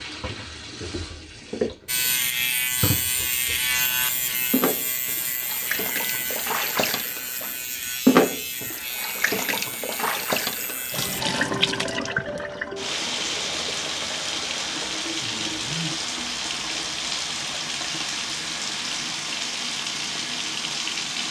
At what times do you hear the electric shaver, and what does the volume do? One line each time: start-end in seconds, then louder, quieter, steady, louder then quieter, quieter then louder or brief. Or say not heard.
1.9-11.2 quieter.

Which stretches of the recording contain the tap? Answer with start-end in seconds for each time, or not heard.
0.0-21.2.